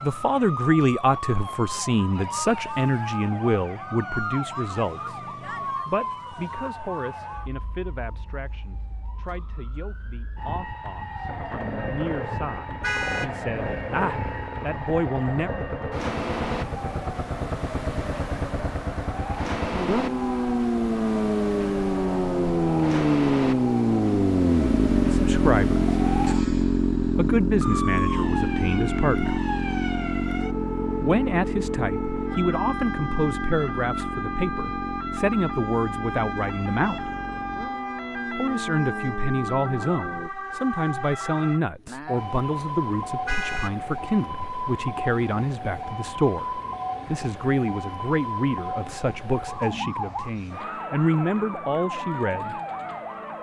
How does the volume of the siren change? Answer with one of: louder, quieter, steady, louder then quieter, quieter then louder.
steady.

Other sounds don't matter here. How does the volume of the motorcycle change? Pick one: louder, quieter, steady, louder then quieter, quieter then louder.
louder then quieter.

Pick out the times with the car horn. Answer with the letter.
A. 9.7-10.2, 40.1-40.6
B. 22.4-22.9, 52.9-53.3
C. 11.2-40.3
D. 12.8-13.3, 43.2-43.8
D.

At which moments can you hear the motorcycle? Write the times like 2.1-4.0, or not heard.
11.2-40.3.